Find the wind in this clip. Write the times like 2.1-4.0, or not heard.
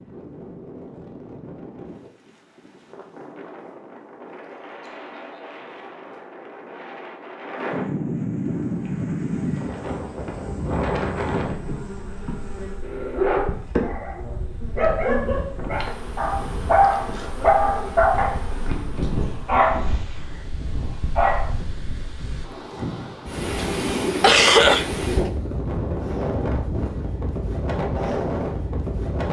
0.0-29.2.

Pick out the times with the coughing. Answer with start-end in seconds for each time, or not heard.
23.6-24.9.